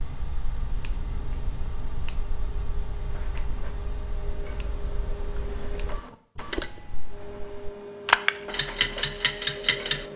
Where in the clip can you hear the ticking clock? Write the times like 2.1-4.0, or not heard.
0.0-10.1.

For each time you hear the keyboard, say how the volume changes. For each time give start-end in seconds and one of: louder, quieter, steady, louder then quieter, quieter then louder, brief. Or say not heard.
not heard.